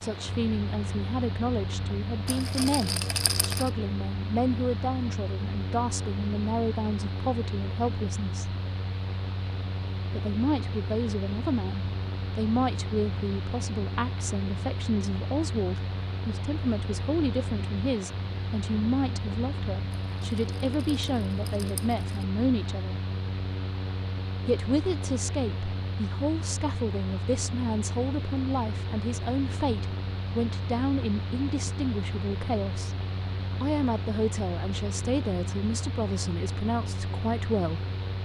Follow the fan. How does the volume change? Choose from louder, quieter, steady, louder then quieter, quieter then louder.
steady.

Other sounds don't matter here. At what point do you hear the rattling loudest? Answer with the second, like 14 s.
3 s.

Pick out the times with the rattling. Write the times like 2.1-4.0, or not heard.
2.2-3.7, 19.9-22.2.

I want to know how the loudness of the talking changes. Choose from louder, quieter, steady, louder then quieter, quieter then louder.
steady.